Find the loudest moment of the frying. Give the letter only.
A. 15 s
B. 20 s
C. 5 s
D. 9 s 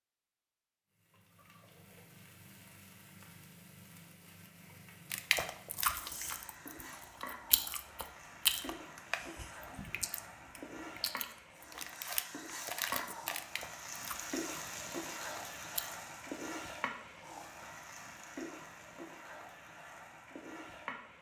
A.